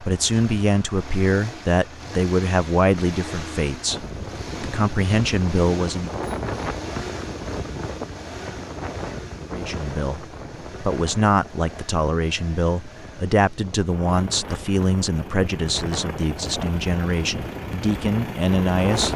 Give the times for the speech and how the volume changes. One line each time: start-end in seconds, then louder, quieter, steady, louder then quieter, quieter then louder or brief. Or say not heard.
0.0-6.2 quieter then louder
9.4-19.1 steady.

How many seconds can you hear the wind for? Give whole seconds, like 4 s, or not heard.
15 s.